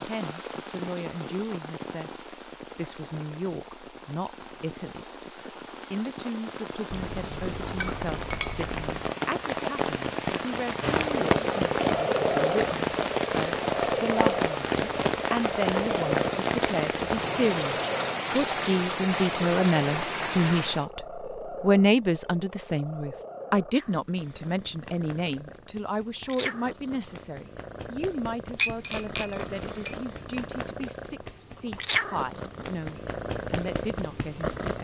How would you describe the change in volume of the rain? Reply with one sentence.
The volume of the rain goes up.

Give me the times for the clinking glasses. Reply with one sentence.
The clinking glasses can be heard from 6.9 to 9.1 s and from 28.6 to 30.1 s.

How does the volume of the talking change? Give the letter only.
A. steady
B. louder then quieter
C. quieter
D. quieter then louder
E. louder
B.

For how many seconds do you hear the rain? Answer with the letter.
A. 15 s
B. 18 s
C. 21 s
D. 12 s
C.